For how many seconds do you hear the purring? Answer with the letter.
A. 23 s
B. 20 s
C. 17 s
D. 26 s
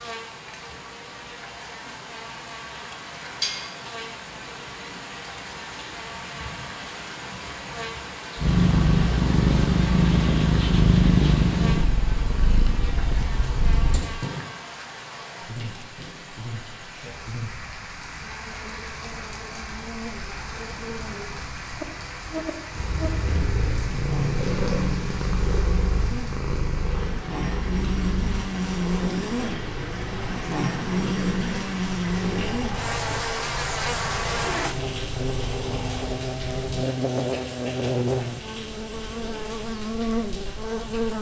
B.